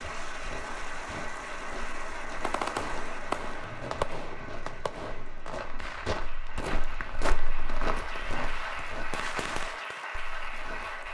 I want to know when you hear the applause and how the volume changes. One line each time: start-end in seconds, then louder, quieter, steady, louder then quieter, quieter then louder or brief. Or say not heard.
0.0-11.0 quieter then louder.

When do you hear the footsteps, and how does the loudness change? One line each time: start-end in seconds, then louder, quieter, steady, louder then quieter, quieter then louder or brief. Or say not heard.
0.0-11.0 louder then quieter.